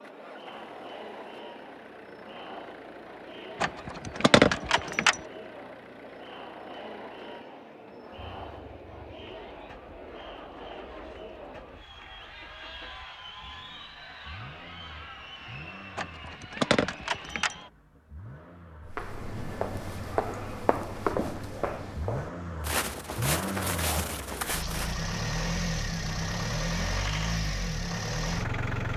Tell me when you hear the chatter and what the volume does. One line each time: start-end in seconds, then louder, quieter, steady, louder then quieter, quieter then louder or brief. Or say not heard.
0.0-17.7 steady.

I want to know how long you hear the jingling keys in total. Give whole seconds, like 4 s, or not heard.
3 s.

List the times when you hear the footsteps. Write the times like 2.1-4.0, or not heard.
18.9-24.9.